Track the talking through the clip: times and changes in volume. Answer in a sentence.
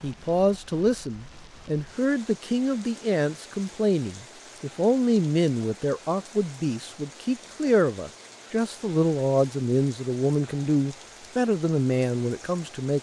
The talking can be heard from 0.0 to 12.9 s, at a steady volume.